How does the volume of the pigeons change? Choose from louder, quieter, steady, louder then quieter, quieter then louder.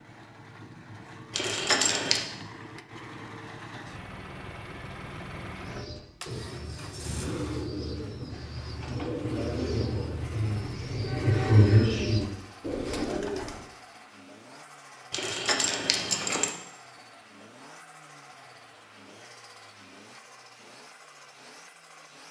louder.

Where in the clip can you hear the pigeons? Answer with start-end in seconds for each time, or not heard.
5.5-13.7.